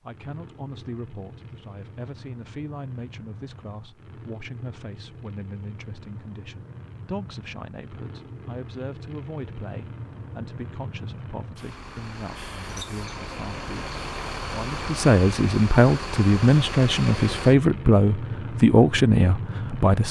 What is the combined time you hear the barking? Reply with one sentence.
The barking can't be heard in this clip.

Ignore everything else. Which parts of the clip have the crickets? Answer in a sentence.
The crickets can't be heard in this clip.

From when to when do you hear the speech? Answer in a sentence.
You can hear the speech from 0.0 to 20.0 s.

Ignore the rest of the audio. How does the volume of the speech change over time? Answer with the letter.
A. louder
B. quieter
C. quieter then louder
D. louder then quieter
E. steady
A.